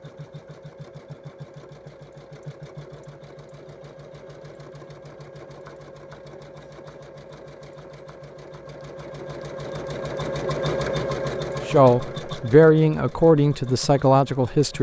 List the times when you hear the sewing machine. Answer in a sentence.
The sewing machine can be heard from 0.0 to 14.7 s.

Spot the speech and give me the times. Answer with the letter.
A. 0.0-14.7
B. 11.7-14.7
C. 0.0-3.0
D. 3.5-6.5
B.